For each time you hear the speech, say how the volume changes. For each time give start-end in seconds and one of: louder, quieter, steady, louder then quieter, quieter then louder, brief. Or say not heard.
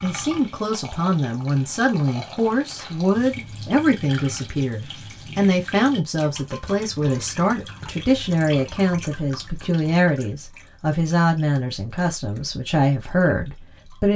0.0-14.1 steady.